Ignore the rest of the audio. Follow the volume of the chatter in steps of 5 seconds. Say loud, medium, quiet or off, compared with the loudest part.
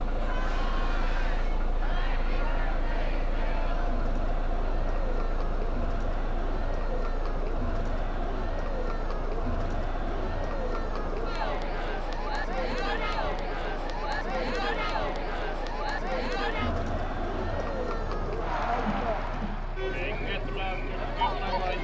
medium, medium, loud, loud, loud.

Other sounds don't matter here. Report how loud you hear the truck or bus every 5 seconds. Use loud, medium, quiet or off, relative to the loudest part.
loud, loud, medium, medium, medium.